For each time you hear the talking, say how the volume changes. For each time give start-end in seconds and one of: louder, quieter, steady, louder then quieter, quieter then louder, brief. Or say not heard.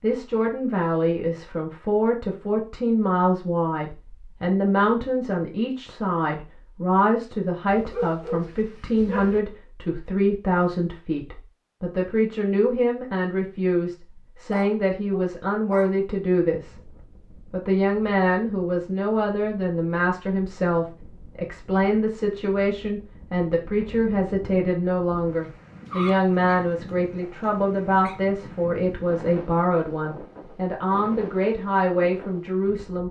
0.0-16.8 steady
17.5-33.0 steady.